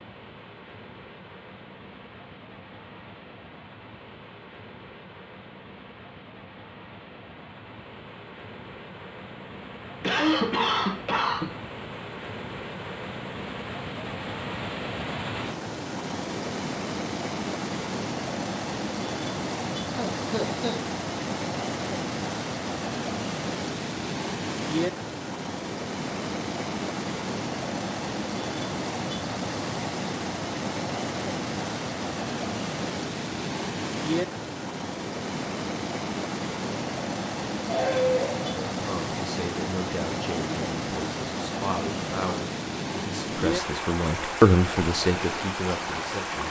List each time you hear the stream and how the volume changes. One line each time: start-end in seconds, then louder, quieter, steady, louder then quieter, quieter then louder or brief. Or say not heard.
0.0-46.4 louder.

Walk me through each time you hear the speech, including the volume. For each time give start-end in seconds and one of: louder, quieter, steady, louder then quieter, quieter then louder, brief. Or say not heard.
38.8-46.4 louder then quieter.